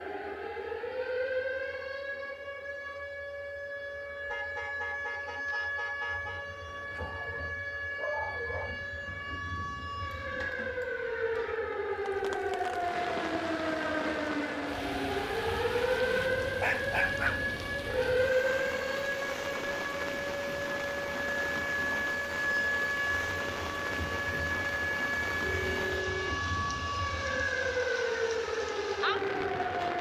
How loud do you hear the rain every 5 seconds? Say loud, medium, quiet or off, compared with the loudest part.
off, off, loud, loud, loud, loud.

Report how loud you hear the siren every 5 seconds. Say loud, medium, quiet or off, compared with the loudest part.
medium, medium, loud, loud, loud, loud.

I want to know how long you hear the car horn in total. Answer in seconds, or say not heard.
5 s.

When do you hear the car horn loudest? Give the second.
26 s.